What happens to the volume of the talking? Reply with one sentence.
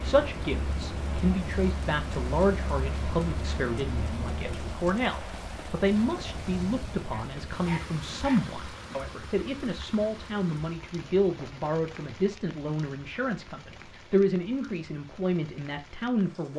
The loudness of the talking stays about the same.